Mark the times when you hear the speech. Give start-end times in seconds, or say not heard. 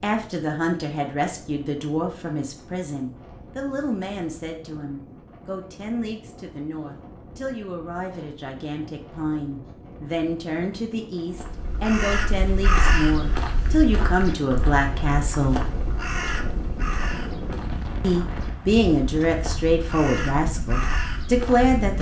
0.0-15.6, 18.0-21.9.